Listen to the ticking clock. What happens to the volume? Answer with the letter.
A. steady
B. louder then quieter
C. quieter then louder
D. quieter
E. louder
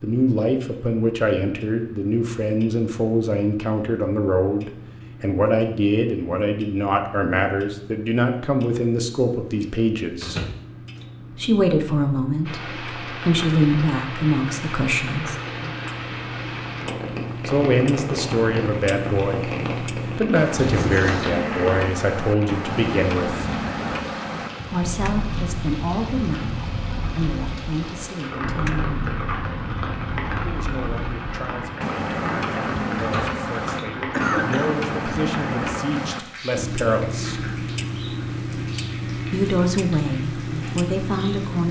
E.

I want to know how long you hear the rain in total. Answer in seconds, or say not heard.
29 s.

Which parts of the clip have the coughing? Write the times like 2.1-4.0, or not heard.
34.1-34.7.